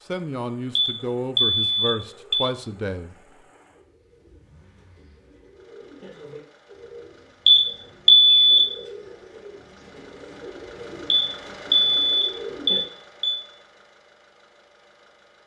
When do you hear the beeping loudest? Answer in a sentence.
The volume of the beeping peaks at 8 seconds.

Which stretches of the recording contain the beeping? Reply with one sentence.
You can hear the beeping from 0.8 to 2.5 s, from 7.5 to 8.6 s and from 11.1 to 13.3 s.